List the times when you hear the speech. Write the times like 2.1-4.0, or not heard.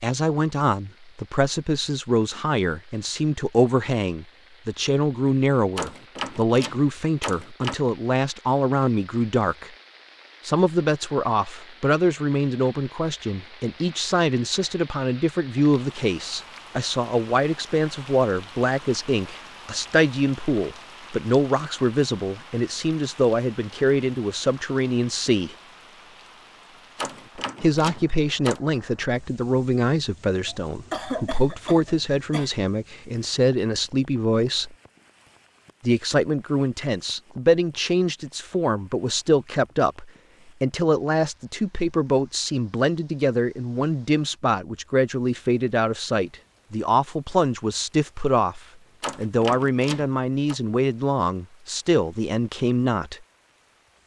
0.0-9.7, 10.4-25.6, 27.6-34.8, 35.8-53.2.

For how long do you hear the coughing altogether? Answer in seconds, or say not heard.
2 s.